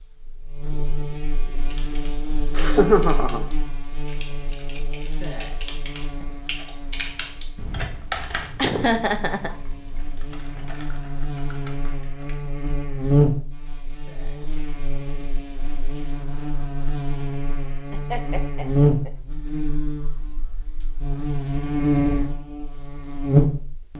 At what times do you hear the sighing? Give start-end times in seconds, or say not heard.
5.1-6.3, 14.0-14.6.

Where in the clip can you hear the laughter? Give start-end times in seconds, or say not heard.
2.5-3.5, 8.6-9.5, 17.9-19.1.